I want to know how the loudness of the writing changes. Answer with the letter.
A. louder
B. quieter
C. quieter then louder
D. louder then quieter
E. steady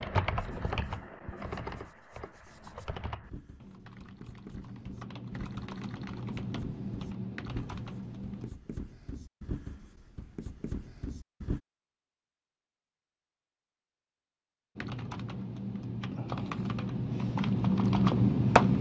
A.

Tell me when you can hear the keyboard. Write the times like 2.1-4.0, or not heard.
0.0-8.5, 14.8-18.7.